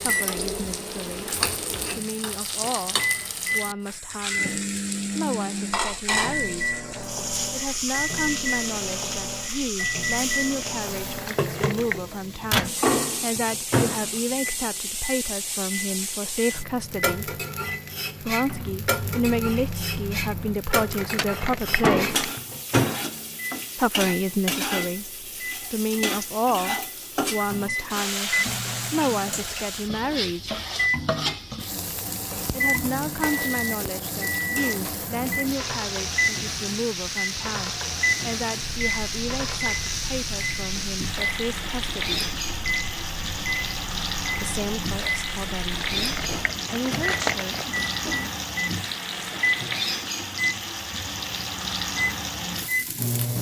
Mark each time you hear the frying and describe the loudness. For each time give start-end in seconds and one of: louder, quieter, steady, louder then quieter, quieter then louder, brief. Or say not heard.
0.0-53.3 steady.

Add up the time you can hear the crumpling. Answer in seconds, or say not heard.
4 s.